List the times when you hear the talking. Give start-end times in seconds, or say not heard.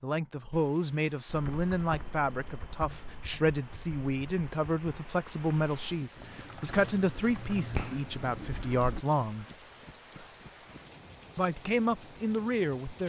0.0-9.4, 11.3-13.0.